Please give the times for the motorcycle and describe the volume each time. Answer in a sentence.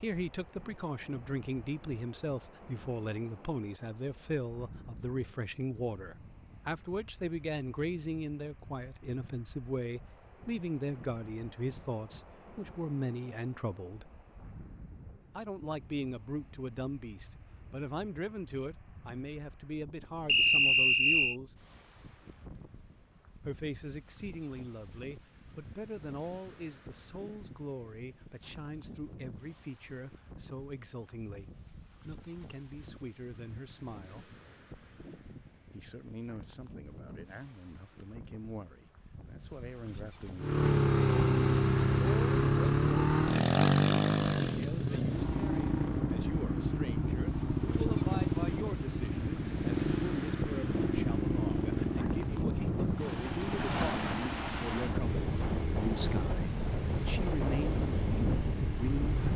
You can hear the motorcycle from 40.4 to 59.1 s, getting quieter.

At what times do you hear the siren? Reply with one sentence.
The siren can't be heard in this clip.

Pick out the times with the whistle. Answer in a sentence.
You can hear the whistle from 20.2 to 21.4 s.